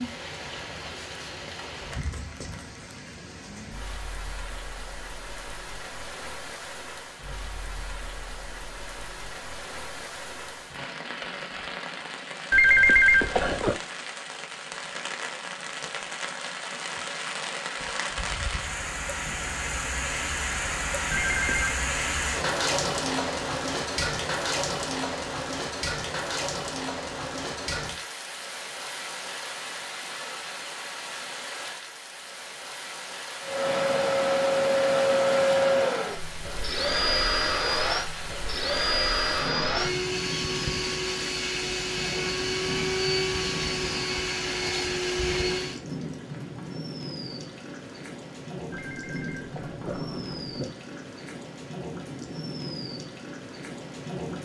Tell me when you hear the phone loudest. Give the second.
13 s.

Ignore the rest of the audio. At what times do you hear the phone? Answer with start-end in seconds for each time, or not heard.
12.5-13.8, 21.1-21.8, 48.7-50.7.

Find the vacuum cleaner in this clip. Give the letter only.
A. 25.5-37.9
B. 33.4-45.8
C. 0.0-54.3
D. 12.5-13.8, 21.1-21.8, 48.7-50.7
B.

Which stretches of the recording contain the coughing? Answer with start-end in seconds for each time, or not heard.
not heard.